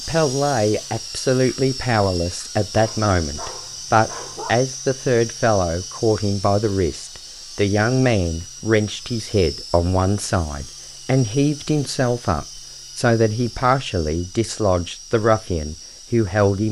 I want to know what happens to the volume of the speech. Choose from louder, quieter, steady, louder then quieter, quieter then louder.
steady.